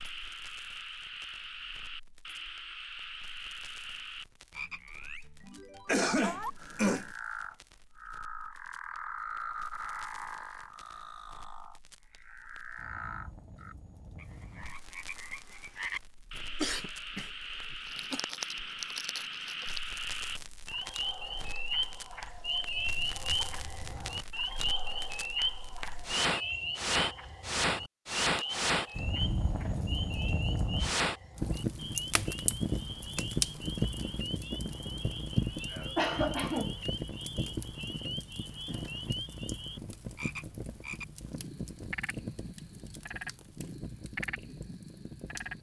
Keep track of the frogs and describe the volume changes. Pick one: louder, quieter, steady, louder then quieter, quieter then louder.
louder then quieter.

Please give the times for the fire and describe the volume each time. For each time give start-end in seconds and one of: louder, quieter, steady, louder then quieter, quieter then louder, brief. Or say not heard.
0.0-45.5 louder then quieter.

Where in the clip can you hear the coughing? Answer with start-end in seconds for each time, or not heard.
5.8-7.1, 16.6-18.2, 35.7-36.8.